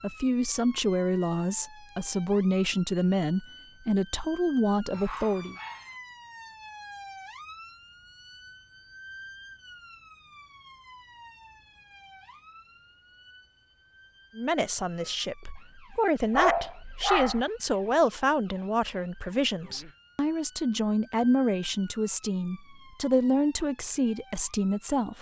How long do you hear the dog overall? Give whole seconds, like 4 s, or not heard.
2 s.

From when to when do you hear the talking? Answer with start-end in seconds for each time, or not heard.
0.0-5.5, 14.3-25.1.